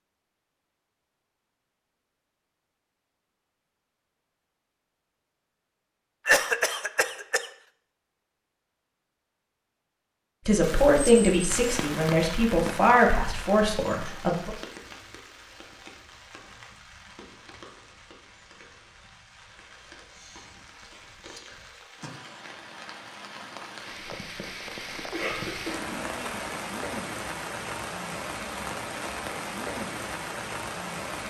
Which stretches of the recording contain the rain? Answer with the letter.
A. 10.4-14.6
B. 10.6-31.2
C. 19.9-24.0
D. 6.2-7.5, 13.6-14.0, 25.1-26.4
B.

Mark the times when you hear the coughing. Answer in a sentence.
The coughing can be heard from 6.2 to 7.5 s, from 13.6 to 14.0 s and from 25.1 to 26.4 s.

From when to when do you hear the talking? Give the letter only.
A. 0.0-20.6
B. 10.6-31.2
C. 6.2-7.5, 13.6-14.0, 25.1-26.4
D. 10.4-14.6
D.